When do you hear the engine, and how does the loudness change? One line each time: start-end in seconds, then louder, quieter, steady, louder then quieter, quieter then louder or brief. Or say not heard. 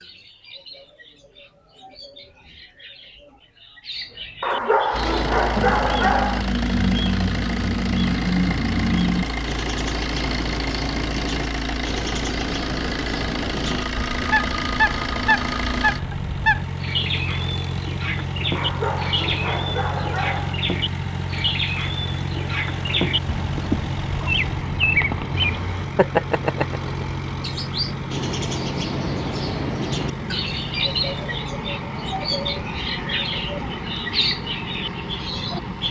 4.9-35.8 steady.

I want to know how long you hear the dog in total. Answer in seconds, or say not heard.
4 s.